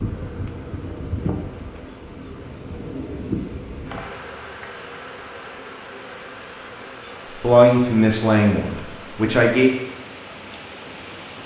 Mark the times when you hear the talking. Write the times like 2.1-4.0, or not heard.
7.4-9.7.